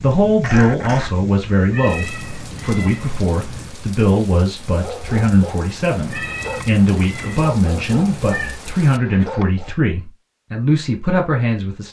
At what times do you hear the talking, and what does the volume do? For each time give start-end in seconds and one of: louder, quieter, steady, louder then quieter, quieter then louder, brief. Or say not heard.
0.0-11.8 steady.